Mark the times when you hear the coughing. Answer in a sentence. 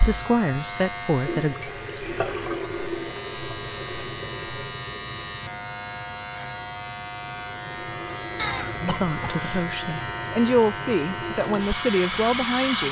The coughing can be heard from 8.3 to 9.7 s.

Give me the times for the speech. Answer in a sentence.
You can hear the speech from 0.0 to 1.6 s and from 8.8 to 12.8 s.